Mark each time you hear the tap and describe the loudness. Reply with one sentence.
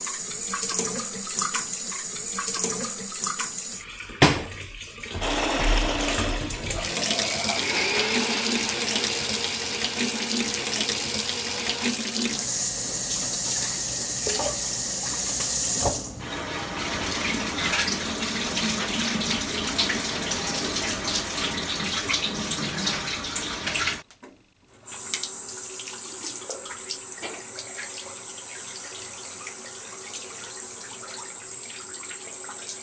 The tap can be heard from 0.0 to 32.7 s, getting quieter.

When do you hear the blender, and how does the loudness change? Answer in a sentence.
The blender can be heard from 5.2 to 11.9 s, getting quieter.